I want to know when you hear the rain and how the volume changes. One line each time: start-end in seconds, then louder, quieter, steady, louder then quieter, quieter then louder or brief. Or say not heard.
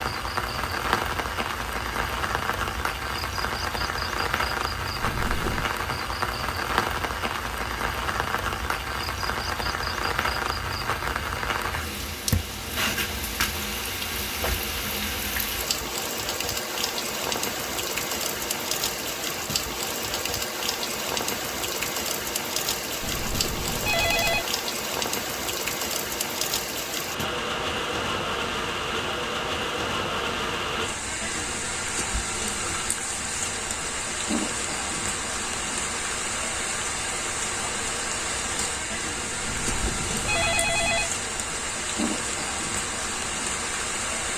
0.0-44.3 steady.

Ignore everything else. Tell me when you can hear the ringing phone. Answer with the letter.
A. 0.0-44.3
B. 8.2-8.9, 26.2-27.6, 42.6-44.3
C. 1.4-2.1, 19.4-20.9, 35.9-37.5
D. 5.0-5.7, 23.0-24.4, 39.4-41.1
D.